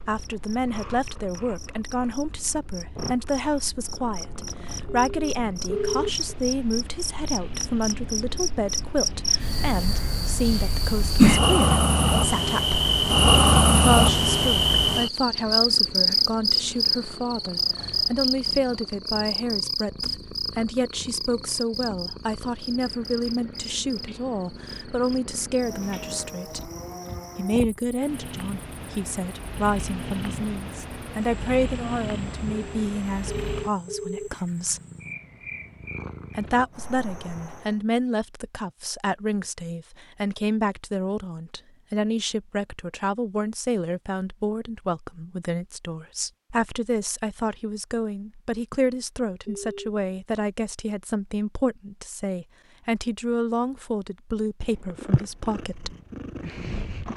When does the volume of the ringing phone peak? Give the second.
6 s.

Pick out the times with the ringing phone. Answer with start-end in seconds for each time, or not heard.
4.8-6.3, 32.5-34.3, 49.5-49.9.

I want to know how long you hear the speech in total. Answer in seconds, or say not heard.
53 s.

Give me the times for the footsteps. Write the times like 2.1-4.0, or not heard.
not heard.